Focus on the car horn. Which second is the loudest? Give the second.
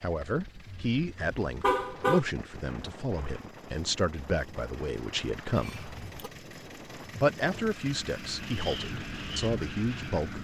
2 s.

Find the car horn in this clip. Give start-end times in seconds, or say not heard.
0.7-2.2, 5.5-6.3.